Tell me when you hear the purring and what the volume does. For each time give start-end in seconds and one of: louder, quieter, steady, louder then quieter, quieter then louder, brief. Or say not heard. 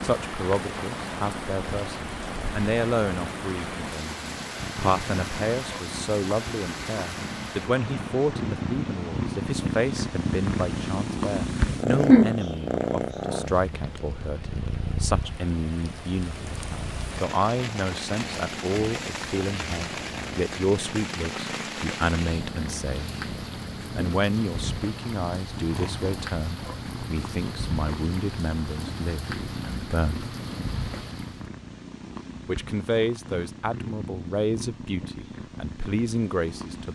0.0-36.9 louder then quieter.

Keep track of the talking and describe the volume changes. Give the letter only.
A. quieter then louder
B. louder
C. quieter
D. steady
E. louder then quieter
D.